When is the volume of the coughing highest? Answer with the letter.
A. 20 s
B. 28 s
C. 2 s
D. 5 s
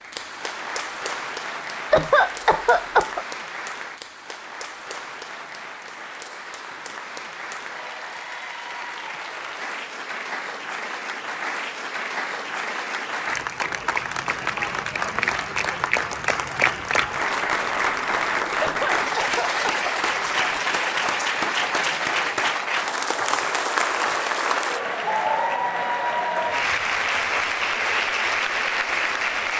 C.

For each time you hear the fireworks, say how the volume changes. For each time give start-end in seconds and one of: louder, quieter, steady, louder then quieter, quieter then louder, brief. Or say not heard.
not heard.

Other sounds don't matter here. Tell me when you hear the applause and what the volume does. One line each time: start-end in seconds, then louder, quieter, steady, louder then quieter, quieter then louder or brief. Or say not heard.
0.0-29.5 louder.